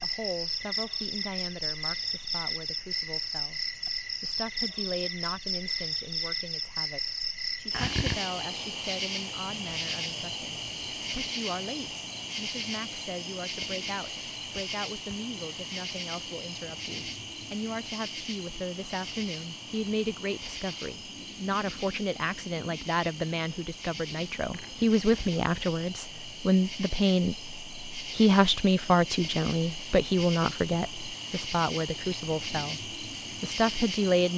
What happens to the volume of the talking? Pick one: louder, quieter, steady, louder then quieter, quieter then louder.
louder.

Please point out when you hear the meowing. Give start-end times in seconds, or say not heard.
not heard.